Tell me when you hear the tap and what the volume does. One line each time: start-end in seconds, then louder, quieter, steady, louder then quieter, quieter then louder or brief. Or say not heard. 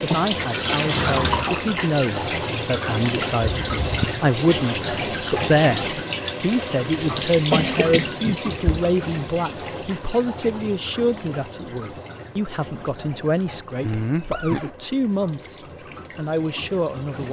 0.0-17.2 quieter.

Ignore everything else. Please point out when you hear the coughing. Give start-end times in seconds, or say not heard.
3.4-4.2, 7.2-8.3, 13.8-14.7.